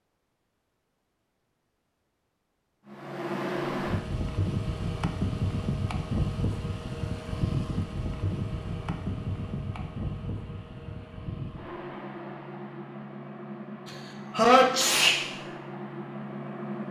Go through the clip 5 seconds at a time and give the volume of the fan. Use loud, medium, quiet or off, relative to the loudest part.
loud, loud, medium, medium.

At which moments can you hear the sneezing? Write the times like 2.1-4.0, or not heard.
13.8-15.2.